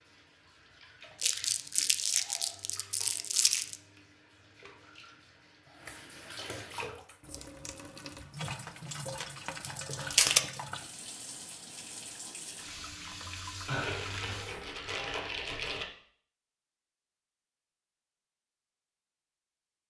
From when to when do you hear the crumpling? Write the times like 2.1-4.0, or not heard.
1.2-3.8, 9.2-10.4, 13.7-15.8.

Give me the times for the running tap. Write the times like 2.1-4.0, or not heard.
0.0-14.7.